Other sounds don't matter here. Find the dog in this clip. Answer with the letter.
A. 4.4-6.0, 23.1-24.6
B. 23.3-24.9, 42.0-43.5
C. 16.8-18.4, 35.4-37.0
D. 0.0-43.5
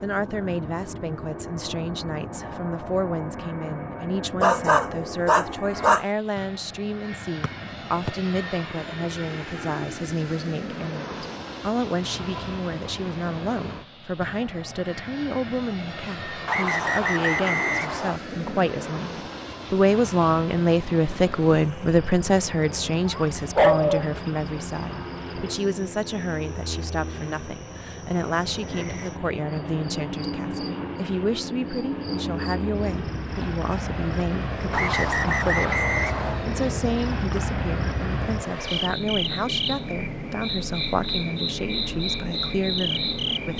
A.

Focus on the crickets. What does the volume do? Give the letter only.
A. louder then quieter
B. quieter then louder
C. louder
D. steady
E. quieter
C.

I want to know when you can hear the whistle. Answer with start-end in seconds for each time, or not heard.
7.4-8.1, 16.4-18.2, 34.7-36.5.